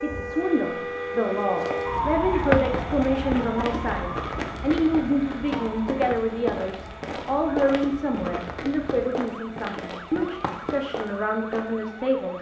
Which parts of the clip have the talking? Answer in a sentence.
The talking can be heard from 0.0 to 12.3 s.